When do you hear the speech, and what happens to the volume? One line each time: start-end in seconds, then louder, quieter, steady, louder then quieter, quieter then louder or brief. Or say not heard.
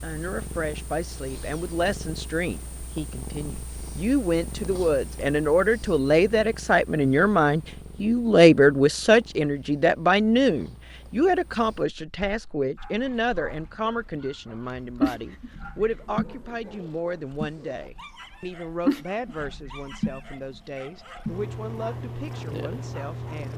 0.0-23.5 louder then quieter.